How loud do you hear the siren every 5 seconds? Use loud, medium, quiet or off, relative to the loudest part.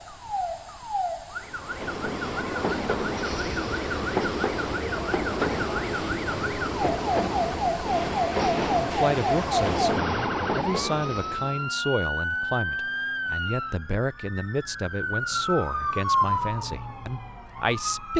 medium, loud, loud, loud.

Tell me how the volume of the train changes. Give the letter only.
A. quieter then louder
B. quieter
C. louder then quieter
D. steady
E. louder
D.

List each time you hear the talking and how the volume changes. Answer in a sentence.
The talking can be heard from 8.7 to 18.1 s, at a steady volume.